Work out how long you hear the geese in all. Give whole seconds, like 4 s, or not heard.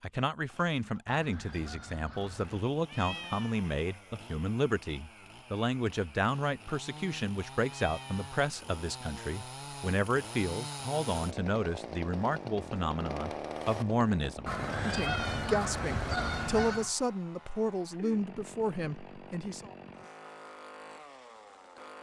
4 s.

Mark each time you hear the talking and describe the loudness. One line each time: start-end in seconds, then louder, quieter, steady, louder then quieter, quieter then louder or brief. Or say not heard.
0.0-19.7 steady.